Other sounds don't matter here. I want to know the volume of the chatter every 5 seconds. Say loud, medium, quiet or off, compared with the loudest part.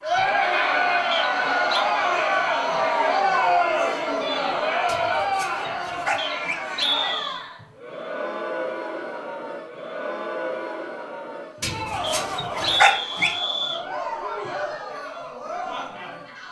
loud, medium, medium, quiet.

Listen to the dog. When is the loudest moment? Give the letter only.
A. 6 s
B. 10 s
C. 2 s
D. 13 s
D.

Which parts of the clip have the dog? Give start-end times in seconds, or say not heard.
4.8-6.7, 11.6-13.3.